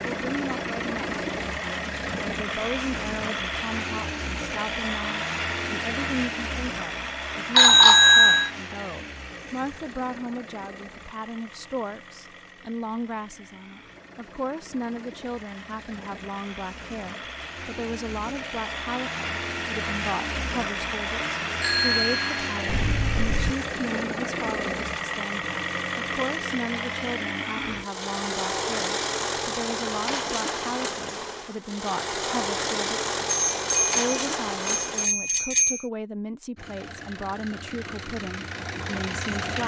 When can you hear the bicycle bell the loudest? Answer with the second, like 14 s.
8 s.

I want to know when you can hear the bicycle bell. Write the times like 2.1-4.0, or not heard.
7.5-8.5, 21.6-23.6, 33.2-35.9.